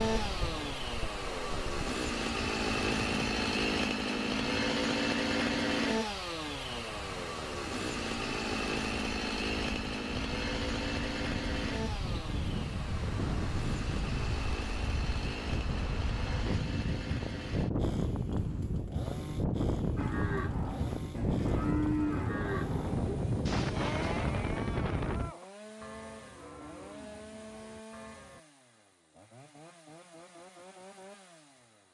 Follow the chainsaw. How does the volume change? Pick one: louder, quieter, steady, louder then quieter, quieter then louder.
quieter.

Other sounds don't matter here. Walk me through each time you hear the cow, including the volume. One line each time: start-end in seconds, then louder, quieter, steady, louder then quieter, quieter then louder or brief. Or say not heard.
19.9-28.4 quieter.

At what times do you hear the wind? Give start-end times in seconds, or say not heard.
0.0-25.4.